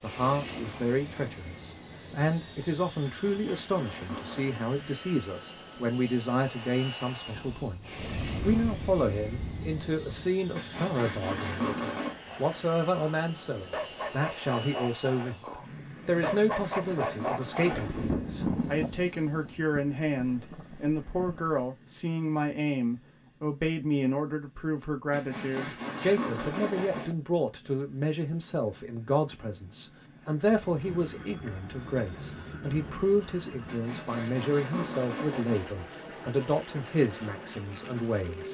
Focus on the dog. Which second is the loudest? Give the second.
17 s.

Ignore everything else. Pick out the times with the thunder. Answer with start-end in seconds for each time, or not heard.
7.3-10.3, 17.7-21.6, 30.6-33.6.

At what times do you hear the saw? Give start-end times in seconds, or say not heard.
3.0-4.7, 10.6-12.2, 16.1-18.1, 25.1-27.1, 33.6-35.7.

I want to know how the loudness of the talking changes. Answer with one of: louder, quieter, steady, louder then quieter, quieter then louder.
steady.